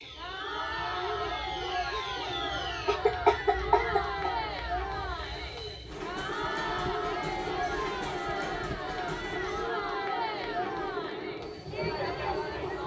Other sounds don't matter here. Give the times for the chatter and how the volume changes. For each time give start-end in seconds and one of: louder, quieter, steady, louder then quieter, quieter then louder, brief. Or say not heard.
0.0-12.8 steady.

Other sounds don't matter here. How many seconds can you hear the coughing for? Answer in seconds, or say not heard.
2 s.